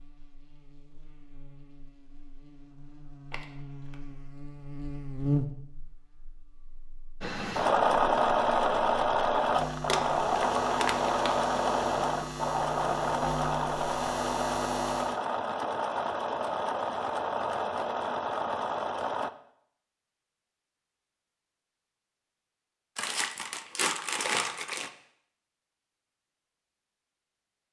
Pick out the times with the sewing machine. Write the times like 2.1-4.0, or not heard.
7.2-19.3.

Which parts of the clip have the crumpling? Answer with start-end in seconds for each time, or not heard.
3.3-4.0, 9.8-11.2, 22.9-24.9.